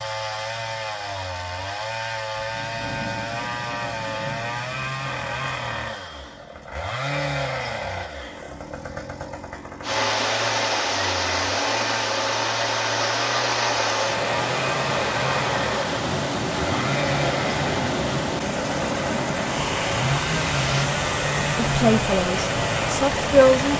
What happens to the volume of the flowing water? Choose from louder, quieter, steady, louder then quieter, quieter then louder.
steady.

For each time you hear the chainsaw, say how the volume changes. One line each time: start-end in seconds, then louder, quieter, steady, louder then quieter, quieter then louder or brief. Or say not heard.
0.0-23.7 steady.